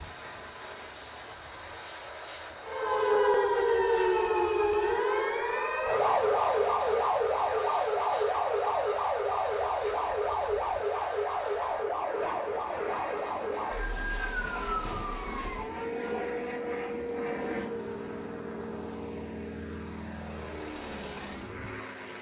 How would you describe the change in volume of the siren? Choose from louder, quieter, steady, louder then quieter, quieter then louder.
quieter.